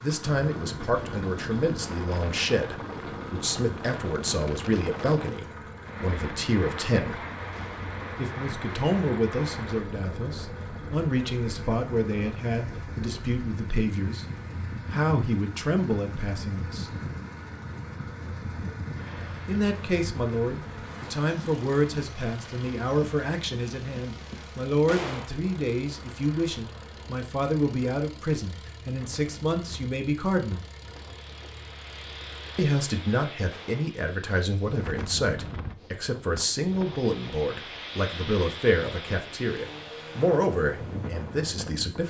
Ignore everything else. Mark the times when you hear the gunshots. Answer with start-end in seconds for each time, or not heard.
7.5-7.9, 24.9-25.4, 33.5-34.0.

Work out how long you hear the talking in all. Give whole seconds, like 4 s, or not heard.
36 s.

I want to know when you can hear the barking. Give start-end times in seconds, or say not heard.
not heard.